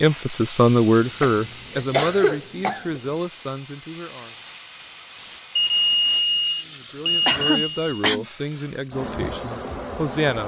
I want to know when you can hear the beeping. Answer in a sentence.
You can hear the beeping from 1.1 to 2.4 s and from 5.5 to 8.1 s.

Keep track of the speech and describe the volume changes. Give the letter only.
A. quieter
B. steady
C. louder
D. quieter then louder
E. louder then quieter
D.